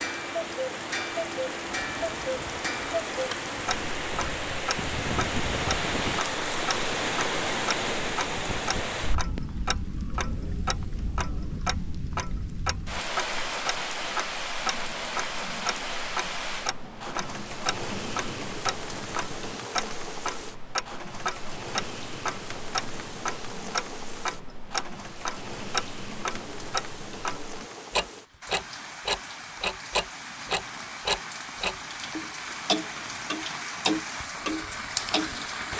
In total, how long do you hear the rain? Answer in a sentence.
You can hear the rain for 36 seconds altogether.